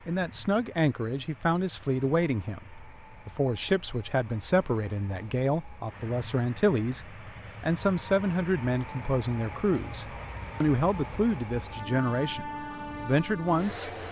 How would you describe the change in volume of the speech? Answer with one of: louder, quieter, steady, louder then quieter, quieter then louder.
steady.